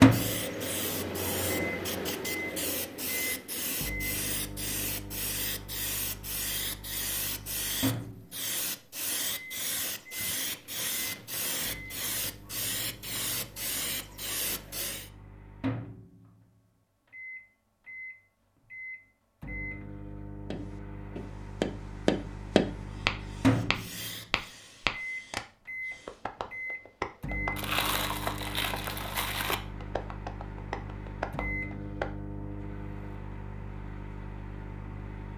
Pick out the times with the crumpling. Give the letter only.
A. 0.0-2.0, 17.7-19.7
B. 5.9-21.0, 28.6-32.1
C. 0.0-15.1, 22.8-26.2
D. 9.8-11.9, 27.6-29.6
D.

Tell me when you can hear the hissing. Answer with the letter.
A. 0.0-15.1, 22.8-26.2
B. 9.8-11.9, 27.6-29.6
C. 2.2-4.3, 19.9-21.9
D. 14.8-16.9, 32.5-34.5
A.